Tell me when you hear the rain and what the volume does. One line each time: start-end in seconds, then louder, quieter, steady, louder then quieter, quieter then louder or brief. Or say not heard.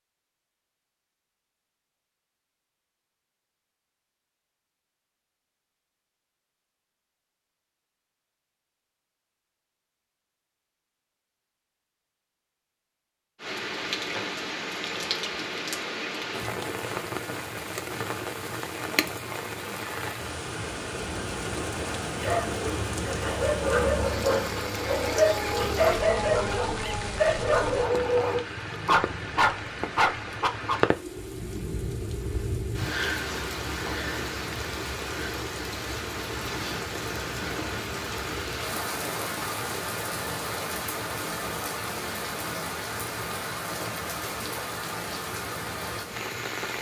13.4-46.7 steady.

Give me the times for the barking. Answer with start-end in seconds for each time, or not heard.
22.2-30.8.